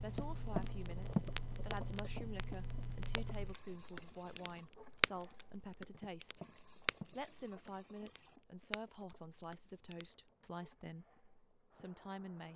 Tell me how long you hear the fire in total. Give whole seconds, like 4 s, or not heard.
10 s.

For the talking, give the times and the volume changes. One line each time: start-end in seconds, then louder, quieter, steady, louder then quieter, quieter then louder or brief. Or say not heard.
0.0-12.5 steady.